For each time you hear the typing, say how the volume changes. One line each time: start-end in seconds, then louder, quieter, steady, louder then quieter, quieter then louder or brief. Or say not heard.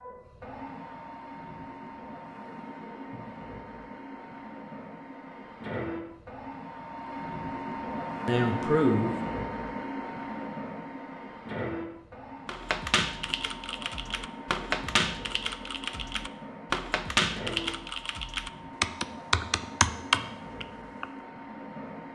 12.4-21.1 louder.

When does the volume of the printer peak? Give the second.
9 s.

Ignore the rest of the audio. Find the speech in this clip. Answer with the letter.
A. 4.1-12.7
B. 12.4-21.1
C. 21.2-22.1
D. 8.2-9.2
D.